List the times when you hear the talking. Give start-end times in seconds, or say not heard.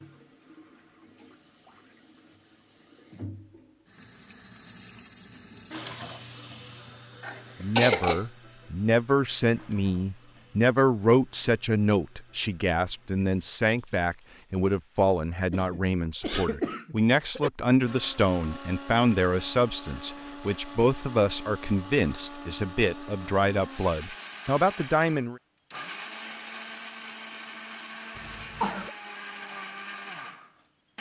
7.6-25.4.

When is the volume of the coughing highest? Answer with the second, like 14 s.
8 s.